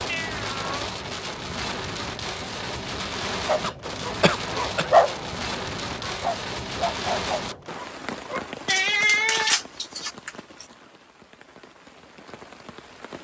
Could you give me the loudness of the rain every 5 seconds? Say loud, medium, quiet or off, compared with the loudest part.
loud, loud, quiet.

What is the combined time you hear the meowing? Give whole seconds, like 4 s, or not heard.
3 s.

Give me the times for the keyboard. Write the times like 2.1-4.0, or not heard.
not heard.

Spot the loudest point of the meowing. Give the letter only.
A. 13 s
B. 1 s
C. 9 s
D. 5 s
C.